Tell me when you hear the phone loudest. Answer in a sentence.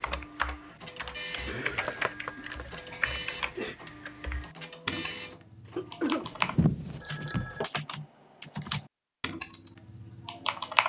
The volume of the phone peaks at 7 seconds.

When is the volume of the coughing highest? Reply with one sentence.
The volume of the coughing peaks at 6 seconds.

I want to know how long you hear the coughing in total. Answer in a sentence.
You can hear the coughing for 3 seconds altogether.